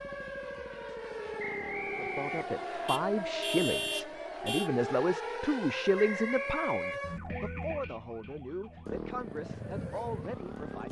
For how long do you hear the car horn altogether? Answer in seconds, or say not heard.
2 s.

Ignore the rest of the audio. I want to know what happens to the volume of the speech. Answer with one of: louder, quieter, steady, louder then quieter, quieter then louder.
quieter.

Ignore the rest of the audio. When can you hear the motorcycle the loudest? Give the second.
9 s.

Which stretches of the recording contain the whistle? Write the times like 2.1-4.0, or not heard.
1.4-2.9, 6.0-7.0.